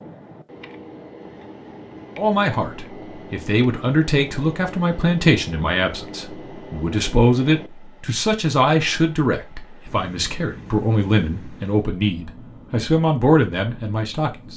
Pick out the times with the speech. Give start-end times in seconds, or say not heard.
2.1-14.5.